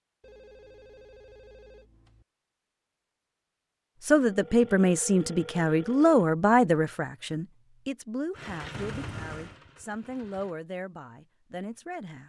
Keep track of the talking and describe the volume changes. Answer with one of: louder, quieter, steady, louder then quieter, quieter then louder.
quieter.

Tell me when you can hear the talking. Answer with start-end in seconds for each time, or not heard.
4.0-12.2.